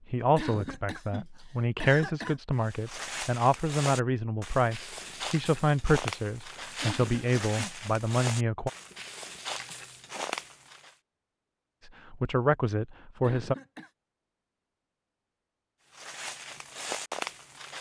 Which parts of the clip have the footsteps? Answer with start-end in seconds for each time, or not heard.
2.5-10.9, 15.9-17.7.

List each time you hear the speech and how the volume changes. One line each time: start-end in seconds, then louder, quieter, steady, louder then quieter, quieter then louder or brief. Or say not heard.
0.1-8.7 steady
11.8-13.6 brief.